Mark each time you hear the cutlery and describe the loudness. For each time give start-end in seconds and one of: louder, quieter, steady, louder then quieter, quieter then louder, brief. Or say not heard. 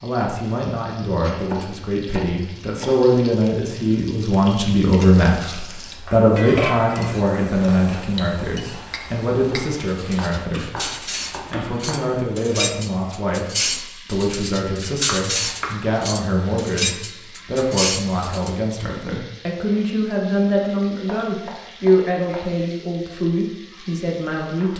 7.5-18.5 louder.